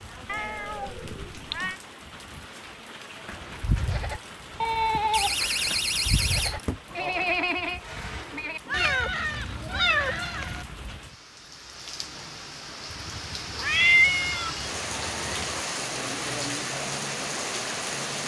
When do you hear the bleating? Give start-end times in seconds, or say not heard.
3.2-10.5.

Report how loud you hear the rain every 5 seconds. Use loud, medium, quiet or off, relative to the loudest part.
quiet, quiet, medium, loud.